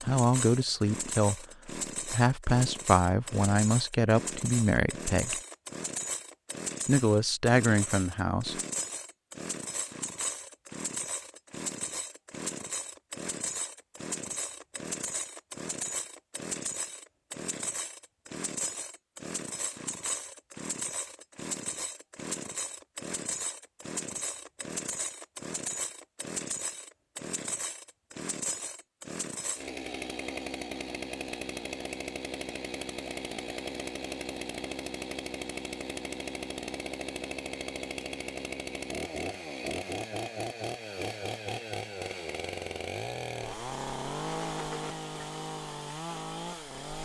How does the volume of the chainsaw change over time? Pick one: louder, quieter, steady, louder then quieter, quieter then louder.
steady.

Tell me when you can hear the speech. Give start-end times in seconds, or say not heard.
0.0-5.4, 6.8-8.6.